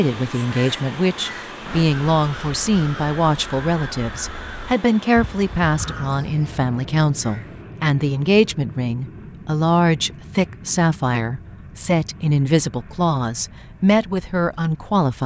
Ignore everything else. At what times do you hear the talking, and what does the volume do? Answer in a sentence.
The talking can be heard from 0.0 to 15.2 s, at a steady volume.